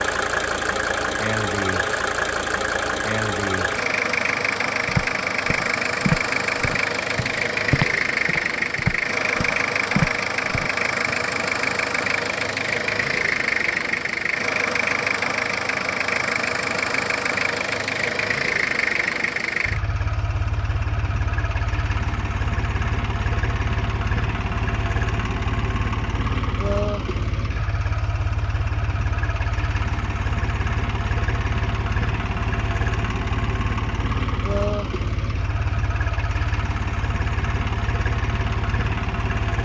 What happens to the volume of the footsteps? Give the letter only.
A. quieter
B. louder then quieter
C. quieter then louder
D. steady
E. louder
C.